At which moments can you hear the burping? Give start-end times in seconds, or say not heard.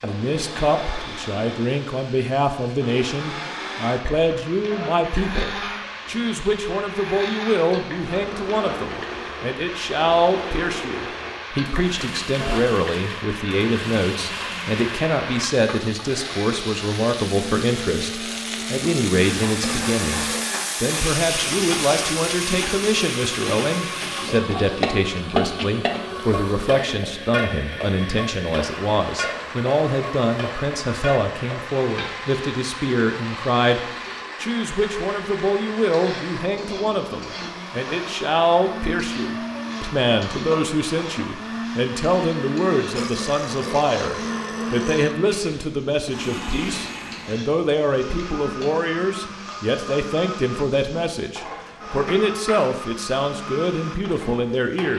19.6-20.4, 42.9-45.1.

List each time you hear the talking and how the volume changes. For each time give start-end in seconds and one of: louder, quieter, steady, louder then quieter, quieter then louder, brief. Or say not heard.
0.0-33.8 steady
34.4-54.9 steady.